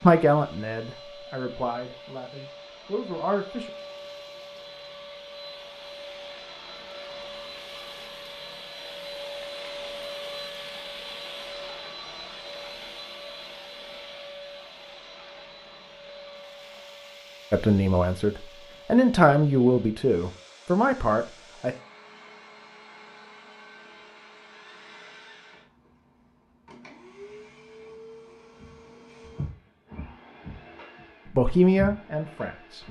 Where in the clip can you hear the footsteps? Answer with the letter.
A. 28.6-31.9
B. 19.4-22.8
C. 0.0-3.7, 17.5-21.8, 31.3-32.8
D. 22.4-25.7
A.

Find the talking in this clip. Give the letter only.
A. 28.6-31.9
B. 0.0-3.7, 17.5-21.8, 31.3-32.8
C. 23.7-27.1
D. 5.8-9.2
B.